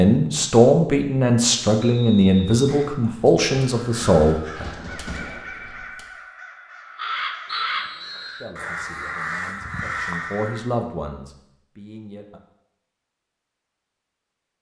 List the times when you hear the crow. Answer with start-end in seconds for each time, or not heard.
3.6-10.7.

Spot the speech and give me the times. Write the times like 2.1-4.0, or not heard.
0.0-4.7, 8.4-12.4.